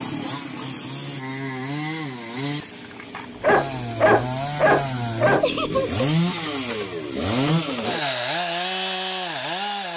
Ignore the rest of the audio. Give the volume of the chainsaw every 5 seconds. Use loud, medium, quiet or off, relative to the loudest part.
medium, loud.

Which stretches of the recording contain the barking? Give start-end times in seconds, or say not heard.
3.4-5.5.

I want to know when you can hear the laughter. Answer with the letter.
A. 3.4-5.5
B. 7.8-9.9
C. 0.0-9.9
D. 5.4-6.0
D.